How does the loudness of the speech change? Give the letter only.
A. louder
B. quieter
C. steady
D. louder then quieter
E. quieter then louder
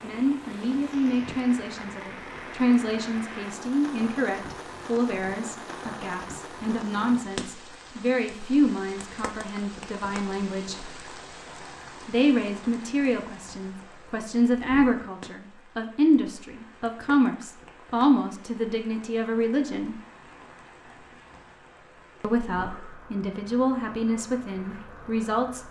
C.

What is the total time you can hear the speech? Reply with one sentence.
The speech can be heard for 22 seconds in total.